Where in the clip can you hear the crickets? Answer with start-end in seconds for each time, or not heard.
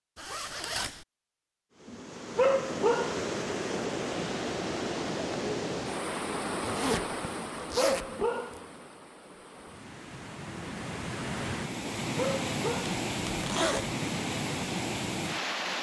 not heard.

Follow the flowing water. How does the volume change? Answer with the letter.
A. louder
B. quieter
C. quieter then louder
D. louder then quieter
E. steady
C.